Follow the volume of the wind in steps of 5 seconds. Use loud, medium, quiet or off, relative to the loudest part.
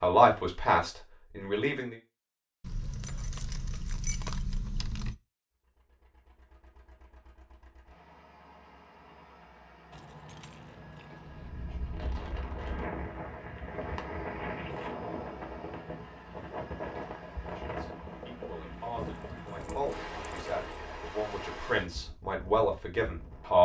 off, off, loud, loud, medium.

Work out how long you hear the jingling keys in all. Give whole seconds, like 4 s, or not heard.
6 s.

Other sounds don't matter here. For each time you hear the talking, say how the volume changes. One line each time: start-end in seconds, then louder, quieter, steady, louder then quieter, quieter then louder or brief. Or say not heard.
0.0-1.9 brief
17.6-23.6 louder.